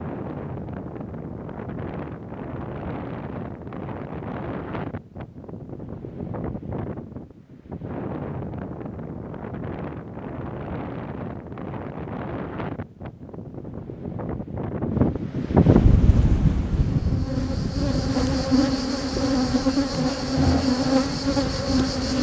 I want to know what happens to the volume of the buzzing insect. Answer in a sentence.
The loudness of the buzzing insect goes up.